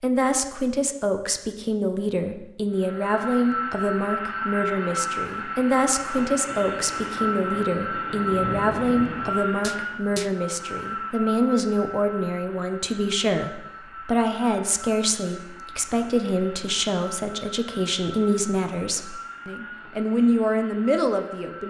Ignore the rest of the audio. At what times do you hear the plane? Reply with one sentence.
You can hear the plane from 2.7 to 21.6 s.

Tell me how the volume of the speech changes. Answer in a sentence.
The loudness of the speech stays about the same.